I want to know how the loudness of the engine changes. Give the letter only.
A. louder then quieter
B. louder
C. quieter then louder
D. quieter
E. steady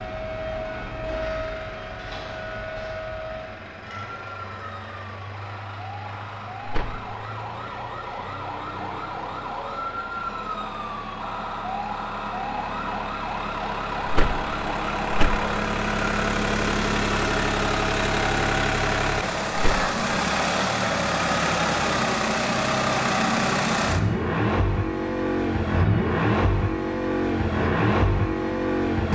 B.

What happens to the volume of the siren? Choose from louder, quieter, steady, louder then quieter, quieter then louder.
quieter then louder.